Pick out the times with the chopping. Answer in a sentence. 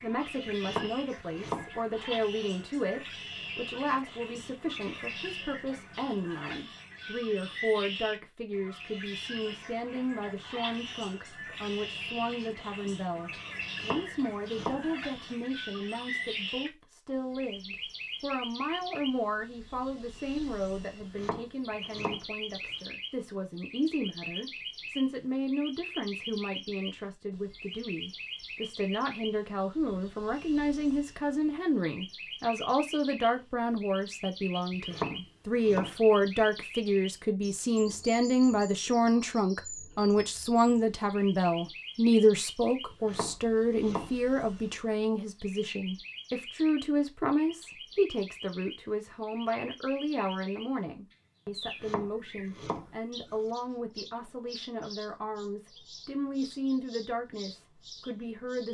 The chopping can be heard from 0.5 to 2.2 s, from 13.6 to 15.3 s, from 21.0 to 22.7 s, from 34.7 to 36.5 s, from 42.9 to 44.6 s and from 51.6 to 53.4 s.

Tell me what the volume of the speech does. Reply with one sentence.
The volume of the speech goes up, then down.